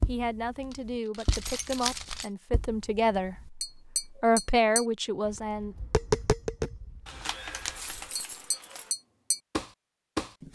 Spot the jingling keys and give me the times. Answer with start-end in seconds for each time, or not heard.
0.7-2.3, 7.0-8.9.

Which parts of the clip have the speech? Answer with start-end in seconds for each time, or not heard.
0.1-3.5, 4.2-5.8.